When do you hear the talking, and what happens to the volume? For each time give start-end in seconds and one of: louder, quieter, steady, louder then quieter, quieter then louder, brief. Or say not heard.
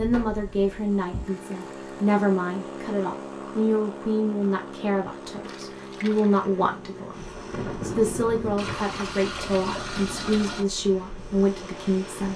0.0-12.3 steady.